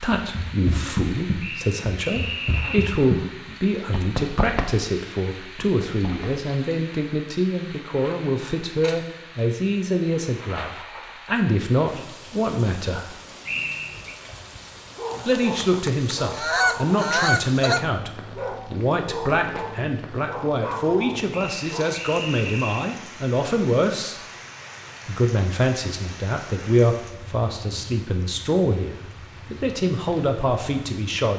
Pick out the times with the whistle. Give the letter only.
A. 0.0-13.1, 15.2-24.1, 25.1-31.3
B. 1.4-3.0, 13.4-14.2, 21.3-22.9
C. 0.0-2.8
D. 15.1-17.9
B.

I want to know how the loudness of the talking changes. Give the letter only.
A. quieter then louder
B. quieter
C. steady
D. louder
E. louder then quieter
C.